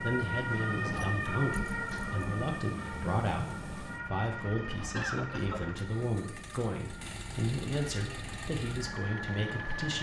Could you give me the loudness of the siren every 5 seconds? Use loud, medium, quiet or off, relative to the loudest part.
loud, medium.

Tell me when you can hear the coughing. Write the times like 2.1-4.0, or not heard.
4.9-5.6.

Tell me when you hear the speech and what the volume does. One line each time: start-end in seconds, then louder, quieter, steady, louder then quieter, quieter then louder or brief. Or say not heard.
0.0-9.9 steady.